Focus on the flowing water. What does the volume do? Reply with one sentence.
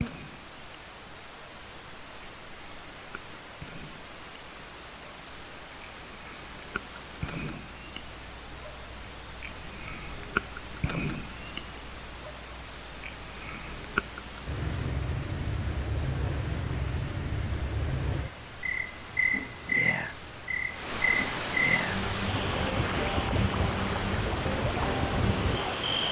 The volume of the flowing water goes up.